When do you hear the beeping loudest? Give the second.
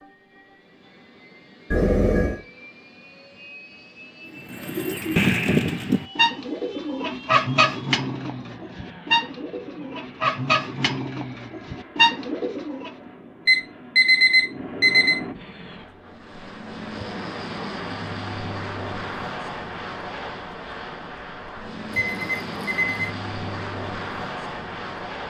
14 s.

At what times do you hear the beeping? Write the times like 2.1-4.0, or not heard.
1.7-2.4, 13.4-15.2, 21.9-23.1.